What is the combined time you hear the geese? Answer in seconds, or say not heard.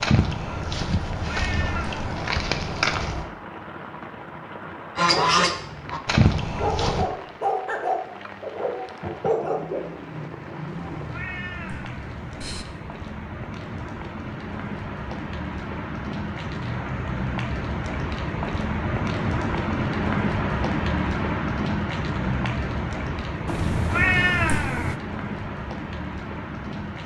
5 s.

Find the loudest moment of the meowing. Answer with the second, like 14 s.
24 s.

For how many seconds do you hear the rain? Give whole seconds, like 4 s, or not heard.
27 s.